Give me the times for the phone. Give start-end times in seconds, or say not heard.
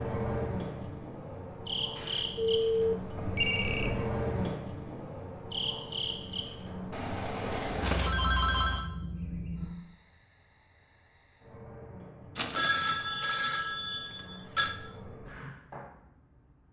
1.9-3.9, 6.9-8.8, 12.3-14.7.